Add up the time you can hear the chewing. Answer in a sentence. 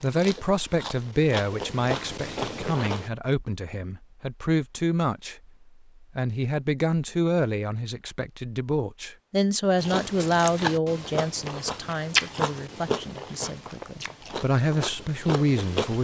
You can hear the chewing for 9 seconds altogether.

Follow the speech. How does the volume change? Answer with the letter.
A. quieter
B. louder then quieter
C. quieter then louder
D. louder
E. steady
E.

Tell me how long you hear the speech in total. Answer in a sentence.
The speech can be heard for 15 seconds in total.